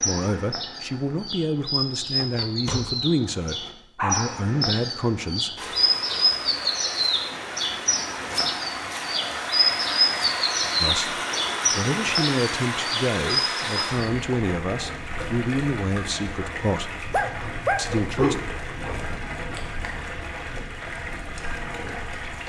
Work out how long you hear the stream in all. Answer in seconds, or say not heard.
17 s.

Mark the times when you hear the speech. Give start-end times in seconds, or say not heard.
0.0-5.5, 10.8-16.9, 17.8-18.4.